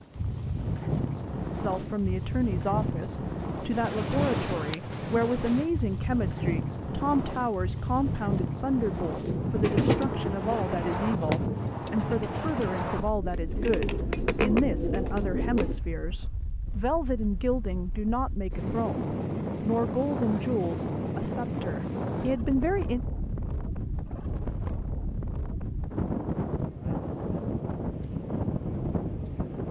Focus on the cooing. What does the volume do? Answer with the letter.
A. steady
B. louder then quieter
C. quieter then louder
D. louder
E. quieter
C.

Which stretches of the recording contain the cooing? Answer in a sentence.
The cooing can be heard from 9.2 to 15.8 s.